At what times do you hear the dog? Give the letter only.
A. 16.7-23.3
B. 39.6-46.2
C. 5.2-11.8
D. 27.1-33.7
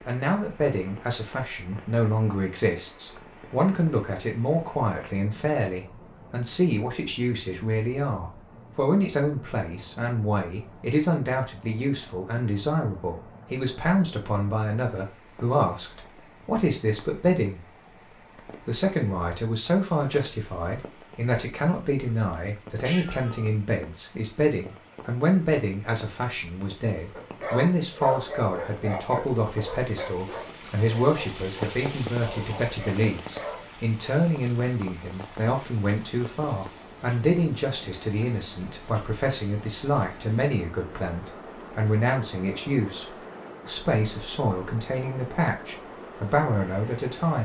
D.